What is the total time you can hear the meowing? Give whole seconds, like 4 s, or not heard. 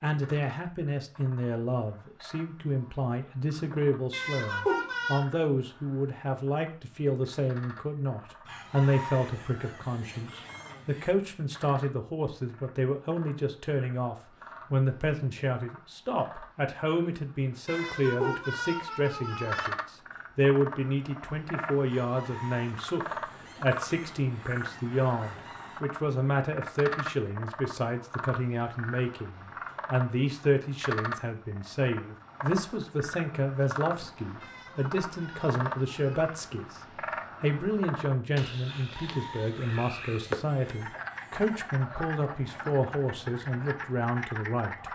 5 s.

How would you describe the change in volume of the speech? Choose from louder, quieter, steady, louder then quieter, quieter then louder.
steady.